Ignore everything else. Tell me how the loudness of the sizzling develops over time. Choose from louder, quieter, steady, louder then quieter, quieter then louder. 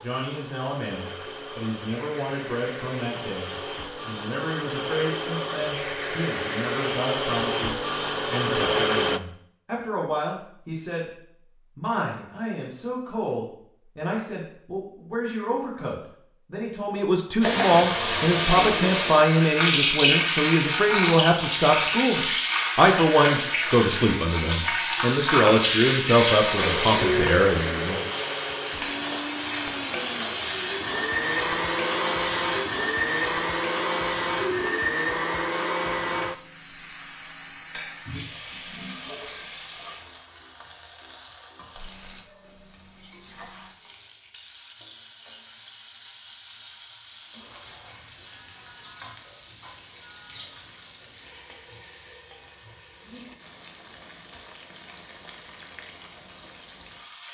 quieter.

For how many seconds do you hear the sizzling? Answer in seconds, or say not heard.
40 s.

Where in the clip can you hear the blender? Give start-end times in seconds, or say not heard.
0.0-9.2, 26.6-36.4.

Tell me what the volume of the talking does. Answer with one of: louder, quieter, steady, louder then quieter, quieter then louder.
louder.